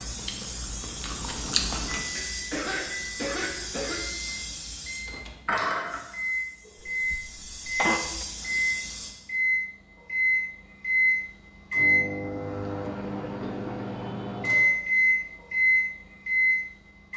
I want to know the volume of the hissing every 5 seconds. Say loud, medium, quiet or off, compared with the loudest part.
loud, loud, off, off.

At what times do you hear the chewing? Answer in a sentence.
The chewing can be heard from 0.0 to 2.0 s.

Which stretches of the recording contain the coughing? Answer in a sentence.
You can hear the coughing from 2.1 to 4.0 s, from 7.0 to 8.0 s and from 13.2 to 14.4 s.